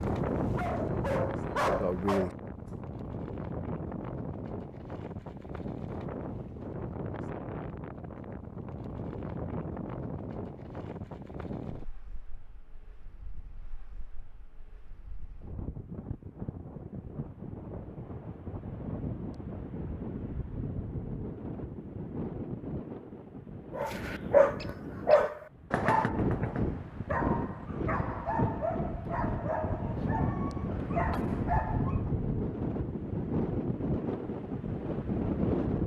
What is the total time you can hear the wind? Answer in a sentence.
The wind can be heard for 36 seconds in total.